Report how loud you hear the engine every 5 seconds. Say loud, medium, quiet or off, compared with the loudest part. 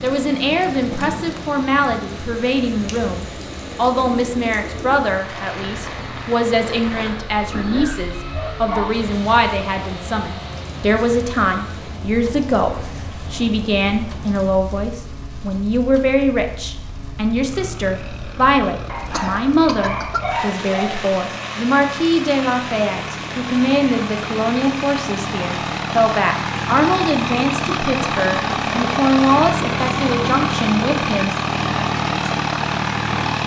quiet, quiet, quiet, quiet, medium, loud, loud.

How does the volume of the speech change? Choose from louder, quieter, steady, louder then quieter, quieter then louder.
steady.